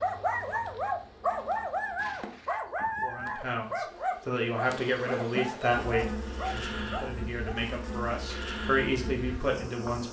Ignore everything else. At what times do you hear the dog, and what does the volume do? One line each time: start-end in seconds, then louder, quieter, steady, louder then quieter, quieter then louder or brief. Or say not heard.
0.0-7.6 quieter.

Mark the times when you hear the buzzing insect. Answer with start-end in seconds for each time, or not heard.
0.0-10.0.